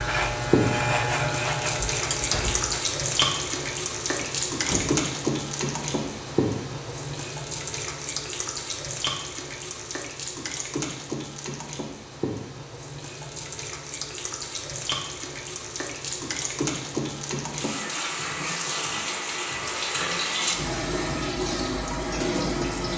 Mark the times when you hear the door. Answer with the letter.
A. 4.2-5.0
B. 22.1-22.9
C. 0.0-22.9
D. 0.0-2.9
A.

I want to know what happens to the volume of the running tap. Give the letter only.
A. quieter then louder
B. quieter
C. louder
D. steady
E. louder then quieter
A.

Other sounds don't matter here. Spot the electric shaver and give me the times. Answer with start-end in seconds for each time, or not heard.
0.0-2.9.